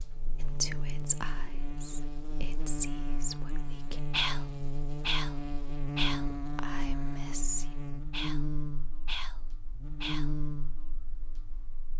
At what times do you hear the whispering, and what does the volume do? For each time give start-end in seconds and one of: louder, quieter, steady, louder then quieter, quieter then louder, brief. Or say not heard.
0.4-10.4 louder then quieter.